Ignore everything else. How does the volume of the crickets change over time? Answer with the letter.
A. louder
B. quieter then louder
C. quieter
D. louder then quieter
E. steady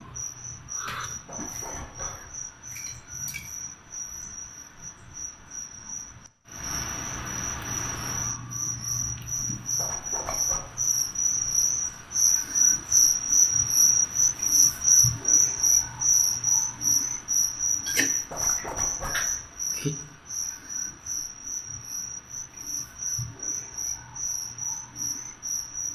D.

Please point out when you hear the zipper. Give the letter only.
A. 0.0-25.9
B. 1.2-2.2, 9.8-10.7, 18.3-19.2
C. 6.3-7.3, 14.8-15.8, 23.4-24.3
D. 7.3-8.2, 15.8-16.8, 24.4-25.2
B.